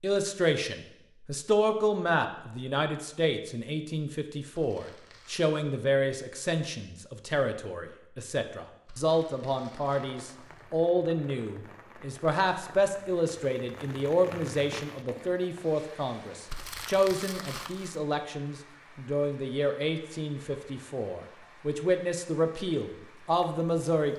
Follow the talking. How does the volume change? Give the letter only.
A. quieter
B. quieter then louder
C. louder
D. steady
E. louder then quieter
D.